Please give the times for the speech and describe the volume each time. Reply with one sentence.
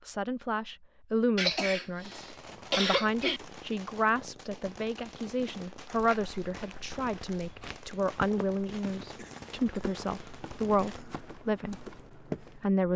The speech can be heard from 0.1 to 12.9 s, at a steady volume.